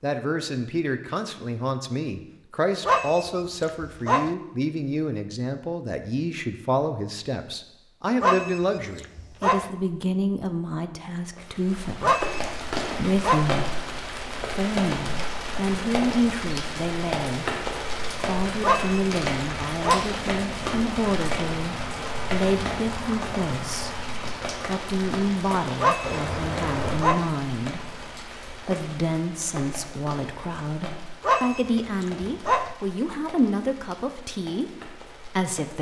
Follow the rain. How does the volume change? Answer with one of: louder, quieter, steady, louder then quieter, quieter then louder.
quieter.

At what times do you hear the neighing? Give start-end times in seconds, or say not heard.
26.0-27.1.